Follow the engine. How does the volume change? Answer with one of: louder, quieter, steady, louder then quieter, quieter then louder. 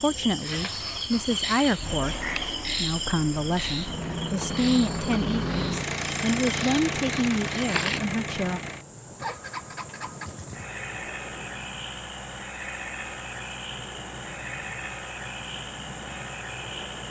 louder then quieter.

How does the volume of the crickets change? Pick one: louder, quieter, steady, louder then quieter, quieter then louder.
quieter.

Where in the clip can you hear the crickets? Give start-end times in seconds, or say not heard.
0.0-17.0.